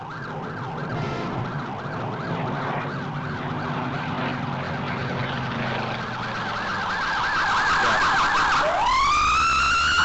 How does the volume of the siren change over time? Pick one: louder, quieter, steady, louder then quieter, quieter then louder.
louder.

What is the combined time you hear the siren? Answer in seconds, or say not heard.
10 s.